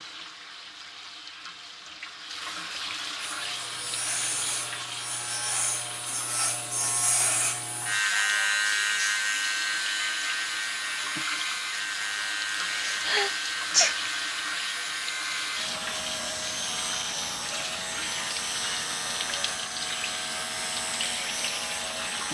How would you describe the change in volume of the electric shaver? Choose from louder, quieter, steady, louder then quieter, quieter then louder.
louder then quieter.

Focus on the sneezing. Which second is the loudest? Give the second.
14 s.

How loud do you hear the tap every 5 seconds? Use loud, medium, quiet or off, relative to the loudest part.
loud, medium, loud, loud, loud.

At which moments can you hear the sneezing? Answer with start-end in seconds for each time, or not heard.
12.7-14.1.